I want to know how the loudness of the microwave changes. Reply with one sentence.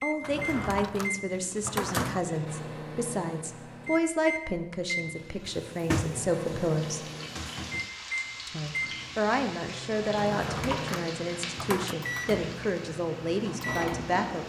The loudness of the microwave stays about the same.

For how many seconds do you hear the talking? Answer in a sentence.
You can hear the talking for 13 seconds altogether.